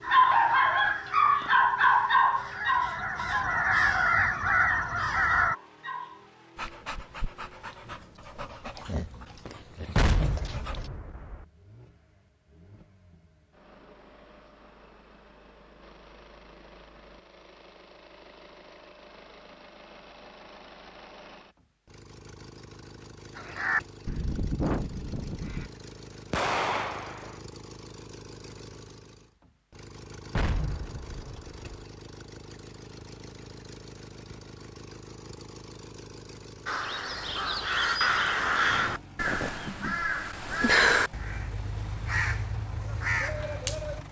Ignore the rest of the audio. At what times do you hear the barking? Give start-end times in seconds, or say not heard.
0.1-10.9.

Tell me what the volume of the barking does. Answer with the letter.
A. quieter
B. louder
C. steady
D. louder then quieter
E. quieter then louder
A.